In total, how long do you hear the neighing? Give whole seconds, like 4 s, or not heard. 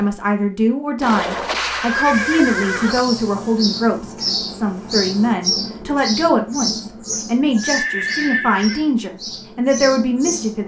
3 s.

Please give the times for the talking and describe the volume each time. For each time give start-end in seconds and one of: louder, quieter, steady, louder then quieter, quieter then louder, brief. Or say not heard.
0.0-10.6 steady.